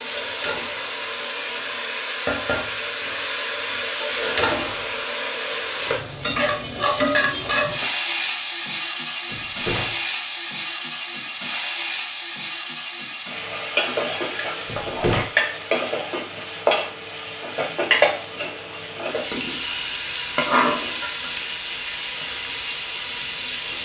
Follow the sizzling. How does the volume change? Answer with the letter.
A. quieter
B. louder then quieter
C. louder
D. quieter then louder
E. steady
E.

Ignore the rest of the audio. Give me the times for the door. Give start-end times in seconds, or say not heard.
9.3-10.0, 14.7-15.3.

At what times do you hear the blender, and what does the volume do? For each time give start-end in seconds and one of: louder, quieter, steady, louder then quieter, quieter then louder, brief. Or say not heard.
not heard.